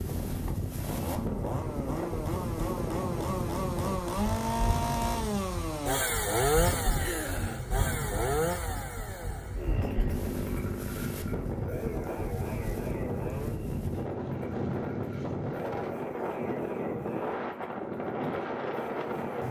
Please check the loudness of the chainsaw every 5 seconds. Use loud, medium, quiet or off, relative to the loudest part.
loud, loud, medium, medium.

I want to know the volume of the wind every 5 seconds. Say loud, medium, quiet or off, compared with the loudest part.
loud, medium, loud, loud.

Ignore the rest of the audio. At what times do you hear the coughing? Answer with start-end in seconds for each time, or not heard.
7.0-7.7.